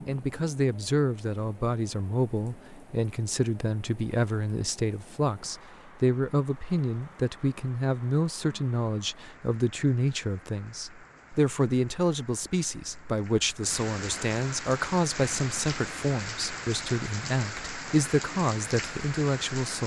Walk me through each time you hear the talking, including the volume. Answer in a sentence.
You can hear the talking from 0.1 to 19.8 s, at a steady volume.